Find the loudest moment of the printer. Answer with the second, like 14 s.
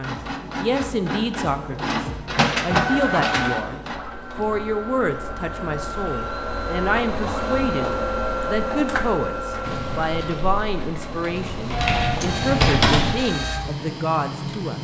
3 s.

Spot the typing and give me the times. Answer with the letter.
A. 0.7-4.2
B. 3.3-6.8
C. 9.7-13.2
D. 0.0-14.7
C.